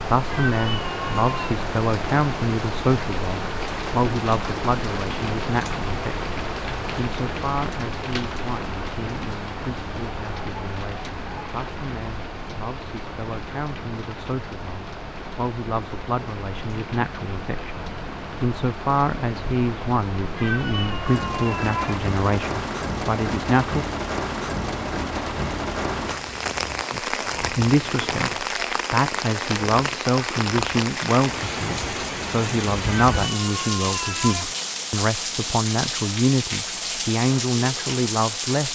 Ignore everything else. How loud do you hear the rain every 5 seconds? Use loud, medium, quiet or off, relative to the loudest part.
loud, loud, medium, medium, loud, loud, loud, loud.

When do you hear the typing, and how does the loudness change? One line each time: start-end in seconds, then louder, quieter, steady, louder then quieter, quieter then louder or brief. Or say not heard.
not heard.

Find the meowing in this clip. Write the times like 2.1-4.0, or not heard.
0.3-1.6, 20.4-22.1, 33.0-34.5.